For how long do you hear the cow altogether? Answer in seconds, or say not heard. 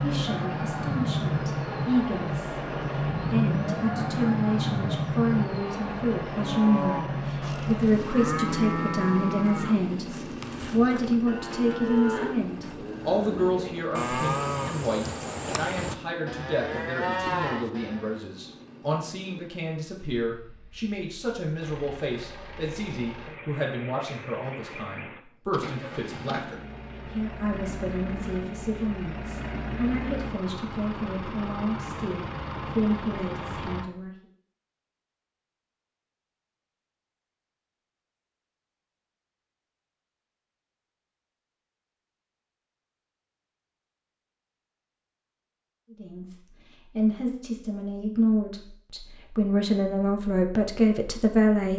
12 s.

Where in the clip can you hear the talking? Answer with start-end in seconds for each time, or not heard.
0.0-34.1, 45.9-51.7.